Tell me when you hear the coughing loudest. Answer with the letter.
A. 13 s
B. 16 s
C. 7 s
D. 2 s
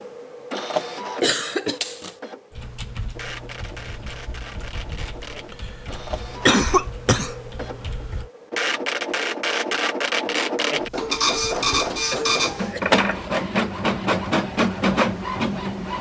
C.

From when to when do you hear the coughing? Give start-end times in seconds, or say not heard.
1.2-2.1, 6.5-7.8, 12.1-12.8.